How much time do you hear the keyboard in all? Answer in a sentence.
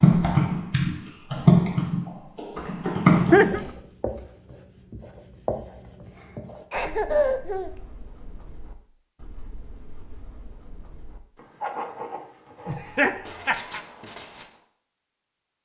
You can hear the keyboard for 4 seconds altogether.